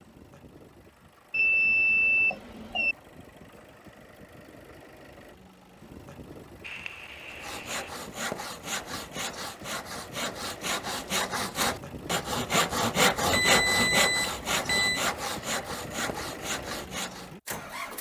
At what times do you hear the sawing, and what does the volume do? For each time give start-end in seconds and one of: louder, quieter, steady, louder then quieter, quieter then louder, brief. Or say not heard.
7.2-17.3 louder then quieter.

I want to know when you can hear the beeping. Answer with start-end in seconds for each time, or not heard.
1.3-3.0, 6.6-7.9, 13.3-15.0.